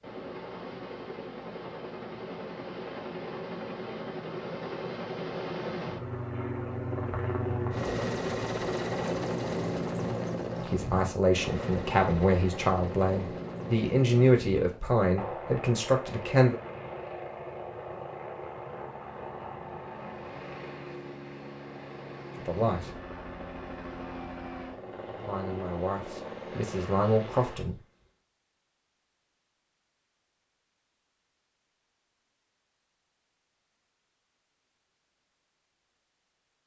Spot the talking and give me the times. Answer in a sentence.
You can hear the talking from 10.7 to 16.6 s, from 22.4 to 22.9 s and from 25.2 to 27.8 s.